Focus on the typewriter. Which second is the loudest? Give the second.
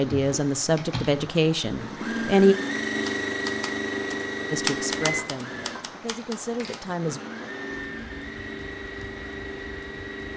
5 s.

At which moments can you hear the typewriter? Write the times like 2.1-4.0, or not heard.
3.0-6.8.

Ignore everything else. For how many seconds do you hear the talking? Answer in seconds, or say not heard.
5 s.